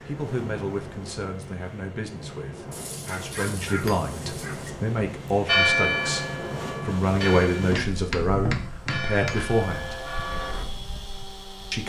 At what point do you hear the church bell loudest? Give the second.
6 s.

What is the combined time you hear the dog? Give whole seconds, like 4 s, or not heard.
2 s.